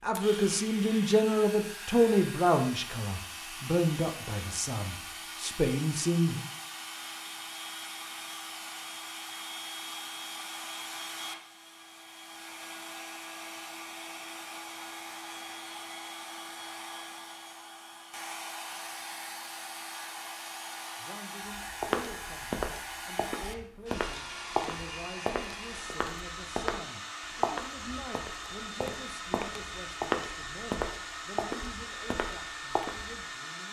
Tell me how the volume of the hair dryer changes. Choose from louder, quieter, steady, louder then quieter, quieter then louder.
steady.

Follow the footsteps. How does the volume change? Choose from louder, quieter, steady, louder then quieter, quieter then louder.
steady.